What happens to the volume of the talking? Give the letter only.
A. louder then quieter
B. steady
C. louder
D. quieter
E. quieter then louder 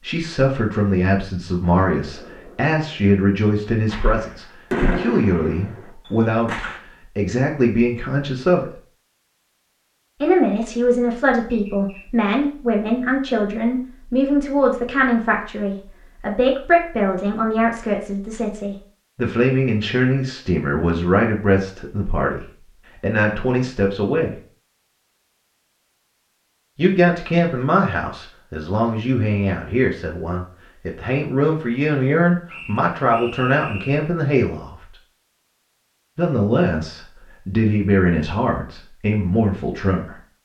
B.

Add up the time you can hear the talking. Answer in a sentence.
You can hear the talking for 35 seconds altogether.